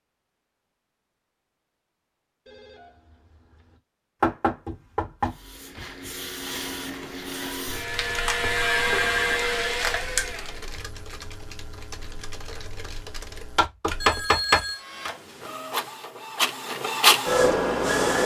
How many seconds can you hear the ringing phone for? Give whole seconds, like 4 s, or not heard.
3 s.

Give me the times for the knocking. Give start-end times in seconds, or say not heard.
4.2-6.1, 13.6-15.1.